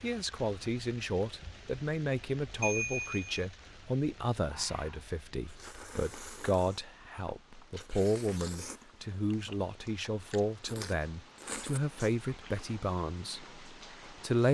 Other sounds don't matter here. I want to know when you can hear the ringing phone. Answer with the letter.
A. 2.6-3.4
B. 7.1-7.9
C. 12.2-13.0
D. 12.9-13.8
A.